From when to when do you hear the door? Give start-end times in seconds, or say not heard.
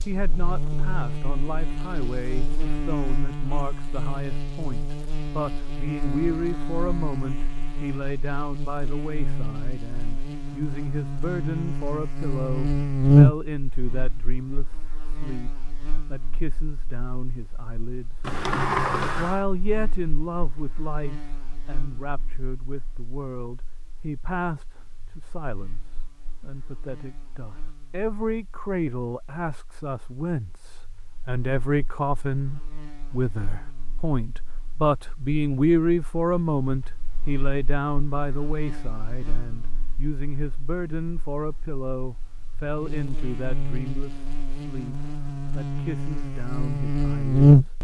18.2-19.4.